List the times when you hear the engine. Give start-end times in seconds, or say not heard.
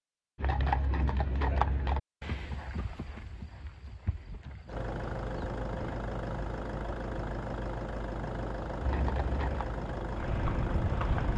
4.7-11.3.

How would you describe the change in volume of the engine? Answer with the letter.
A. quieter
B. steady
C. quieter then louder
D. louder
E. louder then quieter
B.